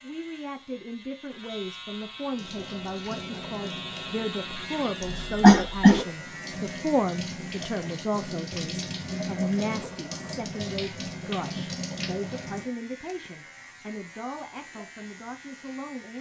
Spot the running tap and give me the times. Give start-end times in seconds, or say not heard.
2.4-12.7.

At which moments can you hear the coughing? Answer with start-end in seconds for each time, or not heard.
5.0-6.0.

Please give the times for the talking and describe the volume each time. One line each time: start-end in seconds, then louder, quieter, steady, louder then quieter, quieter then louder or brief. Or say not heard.
0.0-16.1 louder then quieter.